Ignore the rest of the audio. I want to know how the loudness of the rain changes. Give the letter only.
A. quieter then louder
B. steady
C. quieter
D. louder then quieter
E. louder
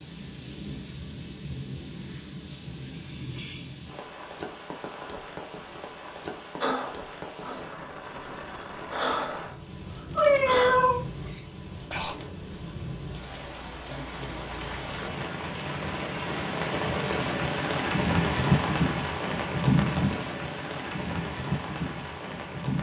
E.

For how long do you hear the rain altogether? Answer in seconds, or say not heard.
23 s.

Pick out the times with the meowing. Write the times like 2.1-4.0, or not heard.
10.2-11.0.